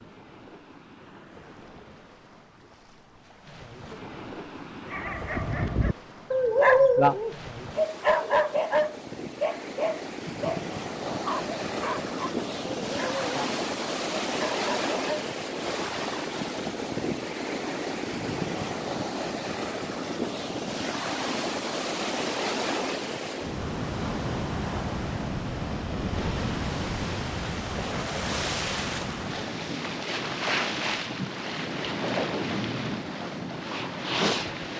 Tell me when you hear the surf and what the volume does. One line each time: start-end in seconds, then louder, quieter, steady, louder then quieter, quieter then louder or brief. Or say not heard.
0.0-34.7 louder.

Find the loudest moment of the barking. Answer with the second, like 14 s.
7 s.